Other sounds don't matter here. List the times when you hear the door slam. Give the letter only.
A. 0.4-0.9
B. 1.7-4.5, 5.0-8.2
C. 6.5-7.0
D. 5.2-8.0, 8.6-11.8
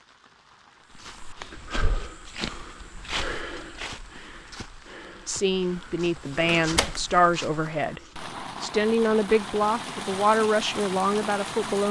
C.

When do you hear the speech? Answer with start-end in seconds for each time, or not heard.
5.2-8.0, 8.6-11.8.